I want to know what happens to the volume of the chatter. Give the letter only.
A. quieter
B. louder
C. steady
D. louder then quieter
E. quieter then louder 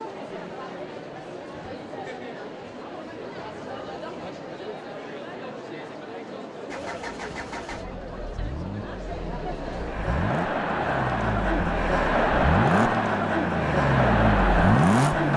B.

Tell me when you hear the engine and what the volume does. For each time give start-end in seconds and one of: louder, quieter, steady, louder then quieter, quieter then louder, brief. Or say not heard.
6.7-15.3 louder.